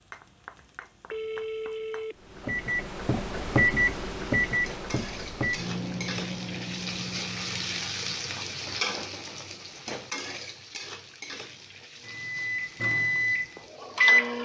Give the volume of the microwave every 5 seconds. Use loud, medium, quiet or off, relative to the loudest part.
loud, medium, loud.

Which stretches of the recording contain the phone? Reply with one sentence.
The phone can be heard from 1.1 to 2.1 s.